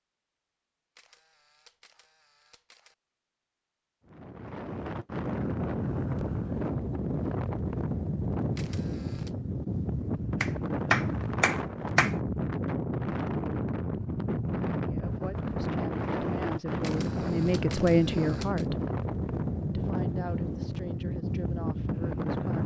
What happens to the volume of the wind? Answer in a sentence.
The loudness of the wind stays about the same.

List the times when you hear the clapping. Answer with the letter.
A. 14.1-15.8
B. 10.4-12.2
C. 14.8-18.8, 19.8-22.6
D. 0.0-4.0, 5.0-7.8
B.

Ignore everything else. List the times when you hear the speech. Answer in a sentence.
You can hear the speech from 14.8 to 18.8 s and from 19.8 to 22.6 s.